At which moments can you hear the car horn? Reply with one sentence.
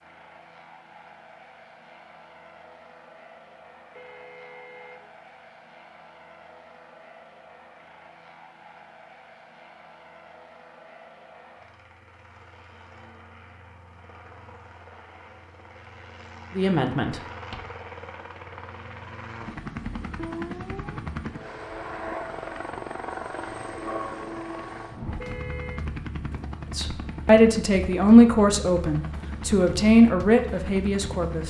You can hear the car horn from 4.0 to 5.5 s and from 25.1 to 25.9 s.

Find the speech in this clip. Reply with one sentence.
You can hear the speech from 16.6 to 17.1 s and from 26.8 to 31.4 s.